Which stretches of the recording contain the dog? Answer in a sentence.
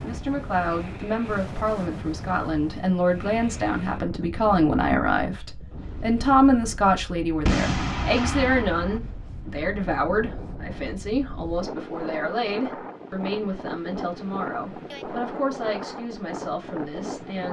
You can't hear the dog here.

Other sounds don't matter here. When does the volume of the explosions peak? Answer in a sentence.
The loudest moment of the explosions is at 8 seconds.